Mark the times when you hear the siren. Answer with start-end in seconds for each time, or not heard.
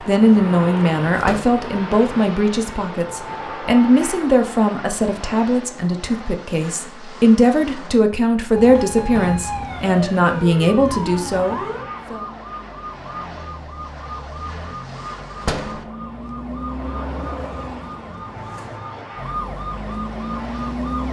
8.6-21.0.